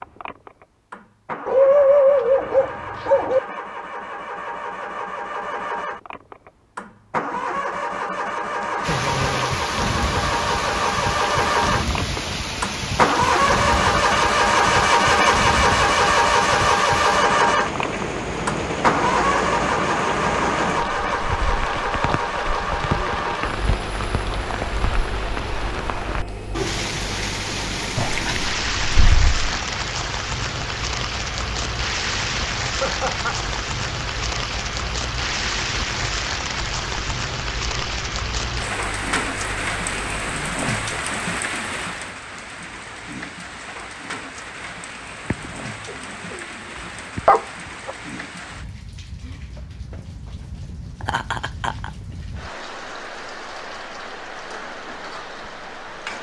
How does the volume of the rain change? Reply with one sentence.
The loudness of the rain goes down.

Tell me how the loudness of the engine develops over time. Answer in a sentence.
The volume of the engine goes up, then down.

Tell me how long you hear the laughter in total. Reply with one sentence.
You can hear the laughter for 3 seconds altogether.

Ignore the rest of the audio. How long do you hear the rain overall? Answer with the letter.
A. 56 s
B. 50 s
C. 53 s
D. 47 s
D.